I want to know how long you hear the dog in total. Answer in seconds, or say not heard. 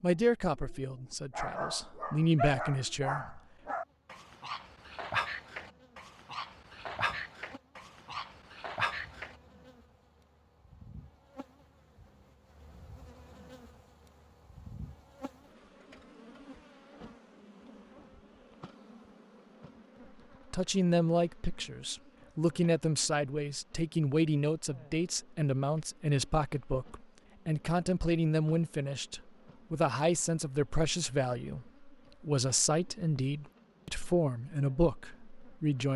9 s.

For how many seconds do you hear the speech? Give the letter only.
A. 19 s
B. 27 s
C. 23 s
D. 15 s
A.